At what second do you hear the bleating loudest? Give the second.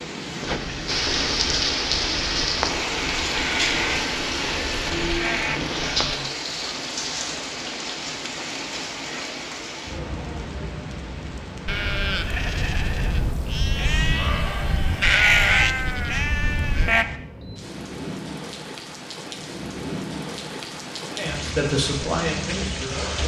15 s.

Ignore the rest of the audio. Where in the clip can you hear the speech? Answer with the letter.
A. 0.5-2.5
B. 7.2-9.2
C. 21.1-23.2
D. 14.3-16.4
C.